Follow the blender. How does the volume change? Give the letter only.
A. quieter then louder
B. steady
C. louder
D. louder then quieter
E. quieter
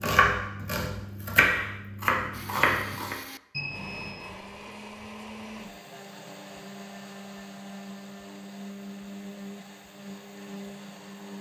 B.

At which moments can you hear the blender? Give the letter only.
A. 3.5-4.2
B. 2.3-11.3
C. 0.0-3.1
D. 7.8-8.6
B.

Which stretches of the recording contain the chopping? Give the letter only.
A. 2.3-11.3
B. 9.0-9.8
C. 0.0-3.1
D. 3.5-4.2
C.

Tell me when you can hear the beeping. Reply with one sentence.
The beeping can be heard from 3.5 to 4.2 s.